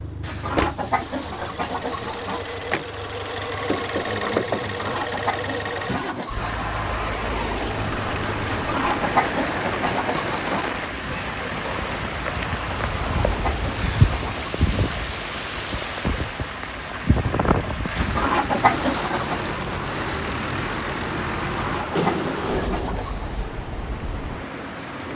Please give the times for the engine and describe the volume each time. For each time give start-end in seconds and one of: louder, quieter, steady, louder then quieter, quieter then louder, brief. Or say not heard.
0.0-23.0 quieter then louder.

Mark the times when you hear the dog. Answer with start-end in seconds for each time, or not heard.
not heard.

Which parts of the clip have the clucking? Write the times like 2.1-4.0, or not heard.
0.2-2.5, 4.5-6.7, 8.4-10.7, 12.9-14.6, 17.9-19.4, 21.4-23.3.